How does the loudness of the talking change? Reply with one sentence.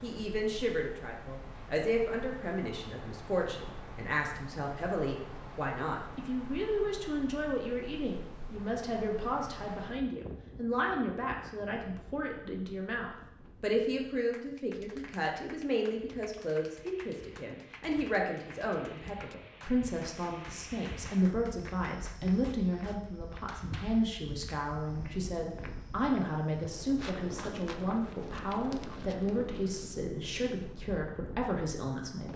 The volume of the talking stays about the same.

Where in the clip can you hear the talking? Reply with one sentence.
The talking can be heard from 0.0 to 32.3 s.